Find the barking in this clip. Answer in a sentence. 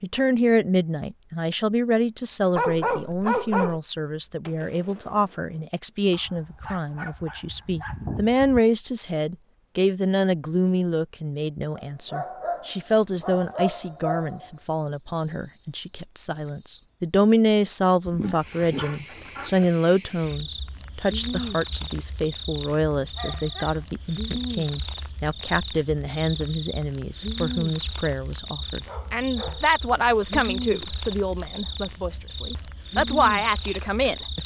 You can hear the barking from 2.5 to 3.8 s, from 6.1 to 8.6 s, from 11.8 to 14.5 s, from 18.1 to 19.7 s, from 23.1 to 23.9 s and from 28.9 to 29.6 s.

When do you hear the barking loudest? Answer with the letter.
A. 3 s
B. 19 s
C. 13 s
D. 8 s
A.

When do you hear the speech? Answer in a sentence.
You can hear the speech from 0.0 to 34.4 s.